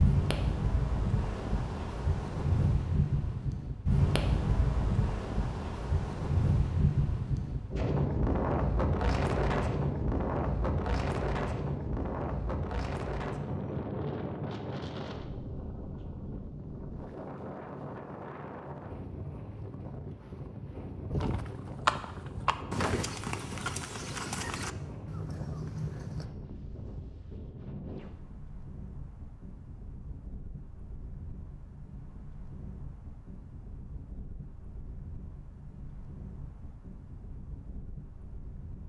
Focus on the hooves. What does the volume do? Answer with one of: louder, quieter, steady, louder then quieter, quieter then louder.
quieter.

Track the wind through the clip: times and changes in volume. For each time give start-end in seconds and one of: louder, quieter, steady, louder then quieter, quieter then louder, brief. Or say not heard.
0.0-38.8 quieter.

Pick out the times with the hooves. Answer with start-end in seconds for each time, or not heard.
21.1-26.3.